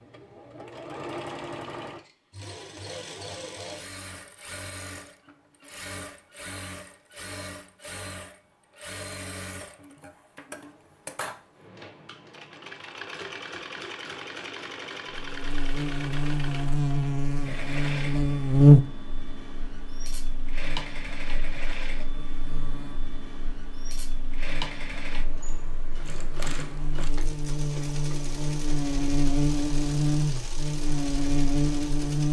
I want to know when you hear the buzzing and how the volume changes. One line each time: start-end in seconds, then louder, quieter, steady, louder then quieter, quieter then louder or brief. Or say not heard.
15.1-32.2 quieter then louder.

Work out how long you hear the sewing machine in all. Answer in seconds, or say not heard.
32 s.